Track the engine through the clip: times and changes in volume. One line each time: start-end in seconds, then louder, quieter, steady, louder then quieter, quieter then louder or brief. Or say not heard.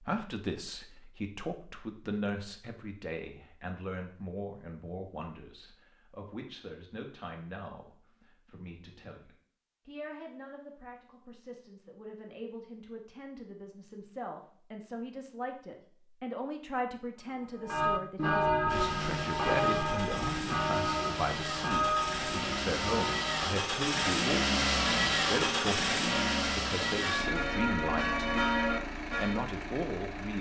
18.6-30.3 louder then quieter.